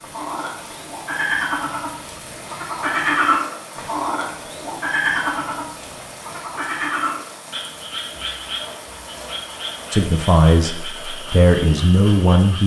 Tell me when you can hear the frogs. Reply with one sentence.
You can hear the frogs from 0.0 to 12.6 s.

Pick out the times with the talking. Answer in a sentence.
The talking can be heard from 9.9 to 12.6 s.